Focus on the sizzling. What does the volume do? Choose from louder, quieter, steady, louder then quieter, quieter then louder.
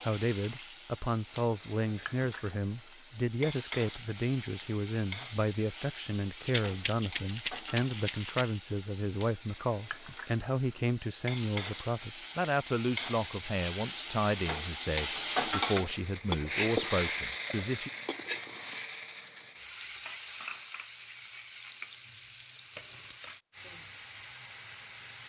louder then quieter.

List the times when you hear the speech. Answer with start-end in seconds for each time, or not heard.
0.0-17.9.